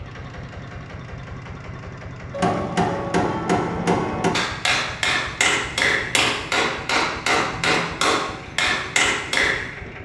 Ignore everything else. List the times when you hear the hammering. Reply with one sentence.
You can hear the hammering from 2.3 to 9.7 s.